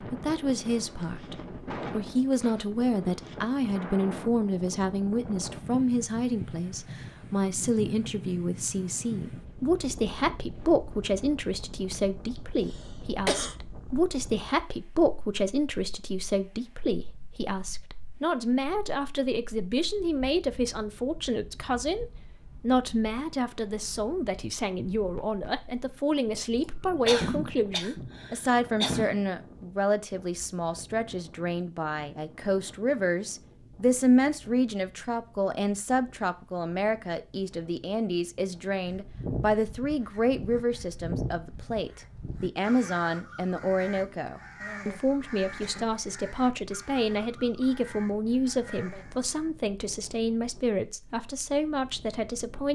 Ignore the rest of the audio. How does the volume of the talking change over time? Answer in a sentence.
The loudness of the talking stays about the same.